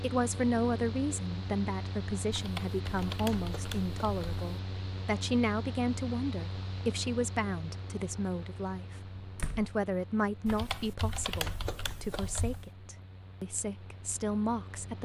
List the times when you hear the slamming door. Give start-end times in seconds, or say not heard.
9.3-9.8.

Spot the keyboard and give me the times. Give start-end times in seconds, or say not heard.
2.3-4.5, 10.4-12.7.